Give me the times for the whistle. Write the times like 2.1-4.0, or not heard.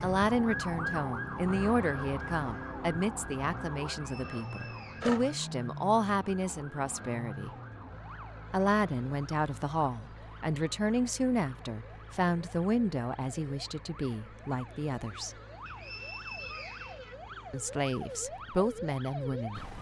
4.0-5.2, 15.7-17.1.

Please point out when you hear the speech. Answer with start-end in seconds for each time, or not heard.
0.0-7.5, 8.5-15.3, 17.5-19.6.